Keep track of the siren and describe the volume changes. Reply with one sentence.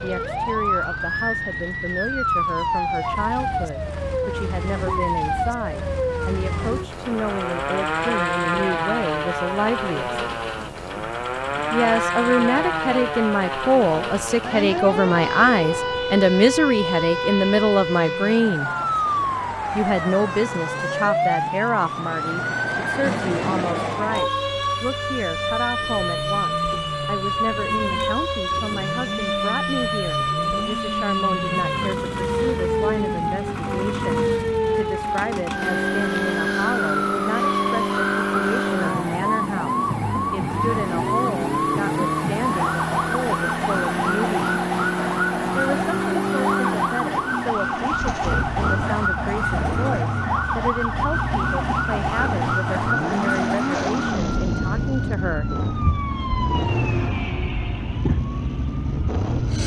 The volume of the siren stays about the same.